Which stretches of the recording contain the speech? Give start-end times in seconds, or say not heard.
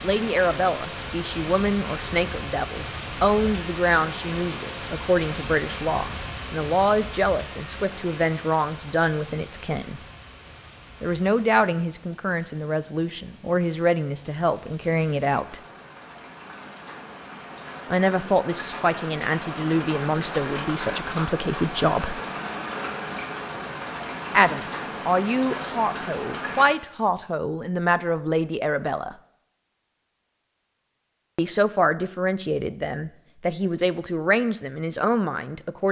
0.0-10.0, 11.0-15.6, 17.9-22.2, 24.3-29.1, 31.4-35.8.